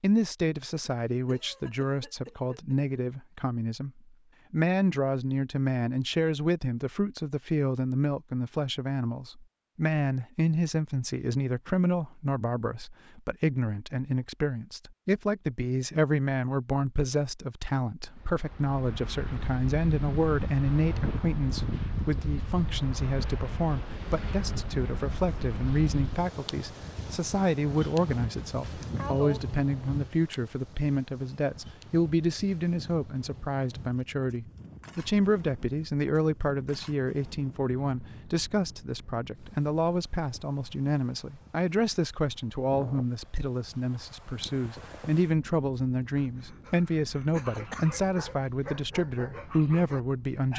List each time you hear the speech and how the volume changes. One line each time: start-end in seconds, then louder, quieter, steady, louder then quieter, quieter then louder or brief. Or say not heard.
0.0-50.5 steady.